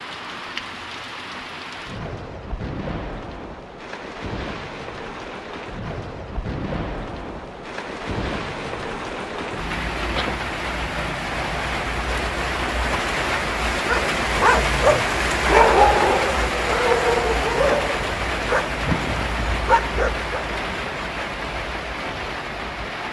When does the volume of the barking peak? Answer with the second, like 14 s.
16 s.